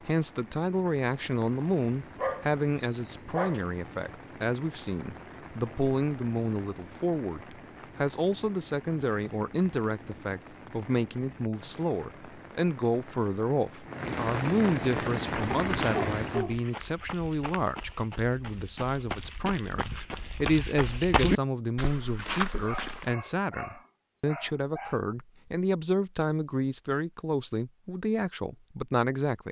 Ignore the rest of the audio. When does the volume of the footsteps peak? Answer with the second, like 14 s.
21 s.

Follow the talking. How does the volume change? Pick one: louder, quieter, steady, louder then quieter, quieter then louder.
steady.